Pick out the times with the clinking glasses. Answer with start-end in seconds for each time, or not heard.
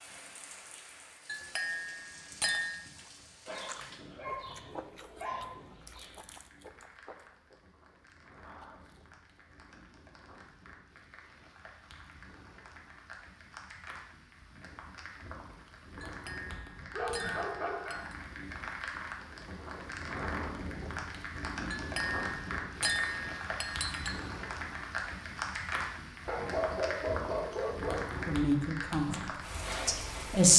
1.2-2.8, 16.1-18.1, 21.7-24.1.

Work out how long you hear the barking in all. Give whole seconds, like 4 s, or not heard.
6 s.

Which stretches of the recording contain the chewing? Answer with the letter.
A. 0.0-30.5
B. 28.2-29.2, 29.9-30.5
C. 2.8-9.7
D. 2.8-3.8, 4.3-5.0
C.